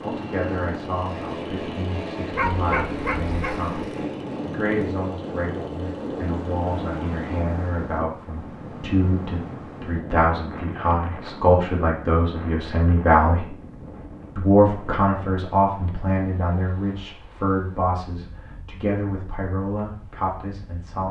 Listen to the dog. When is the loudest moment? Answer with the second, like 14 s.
3 s.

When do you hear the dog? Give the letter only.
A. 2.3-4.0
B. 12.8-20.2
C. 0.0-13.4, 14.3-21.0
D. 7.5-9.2
A.